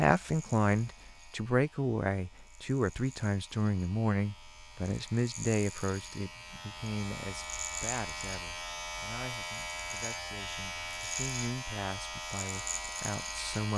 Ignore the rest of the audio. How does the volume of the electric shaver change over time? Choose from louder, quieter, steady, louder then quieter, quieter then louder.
louder.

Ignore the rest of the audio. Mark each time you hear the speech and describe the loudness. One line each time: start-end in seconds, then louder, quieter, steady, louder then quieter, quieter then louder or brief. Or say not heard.
0.0-13.7 quieter then louder.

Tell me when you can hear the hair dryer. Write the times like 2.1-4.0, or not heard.
not heard.